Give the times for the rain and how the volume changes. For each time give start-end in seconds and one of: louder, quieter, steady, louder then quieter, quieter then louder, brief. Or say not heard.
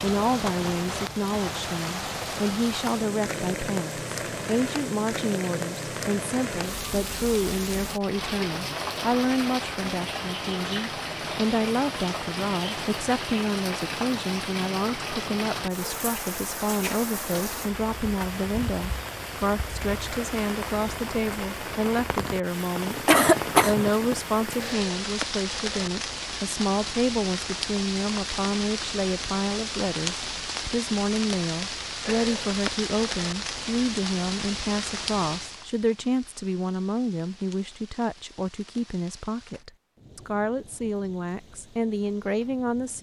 0.0-42.9 quieter.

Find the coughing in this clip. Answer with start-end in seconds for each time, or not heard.
23.1-23.8.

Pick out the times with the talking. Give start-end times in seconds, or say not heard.
0.0-42.9.